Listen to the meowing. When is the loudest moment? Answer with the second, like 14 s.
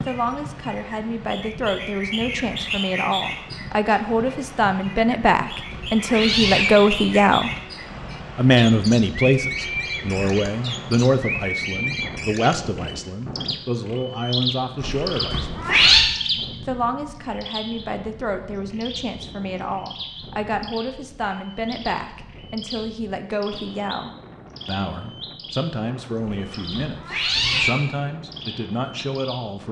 16 s.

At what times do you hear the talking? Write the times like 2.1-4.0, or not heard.
0.1-7.5, 8.3-15.5, 16.6-29.6.